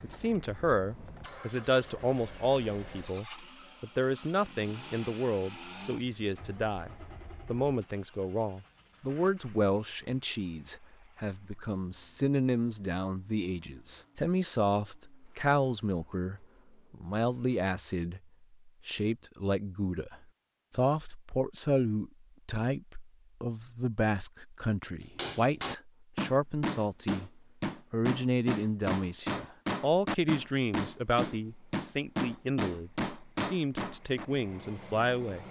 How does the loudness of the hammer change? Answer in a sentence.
The volume of the hammer stays about the same.